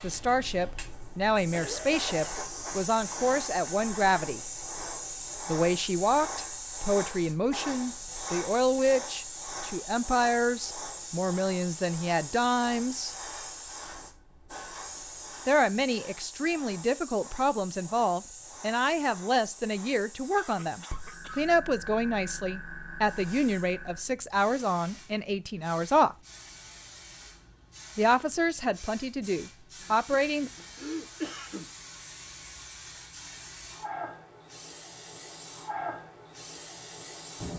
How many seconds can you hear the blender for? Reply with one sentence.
You can't hear the blender here.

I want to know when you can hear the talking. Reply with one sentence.
The talking can be heard from 0.0 to 4.4 s, from 5.5 to 13.2 s, from 15.4 to 26.1 s and from 27.9 to 30.5 s.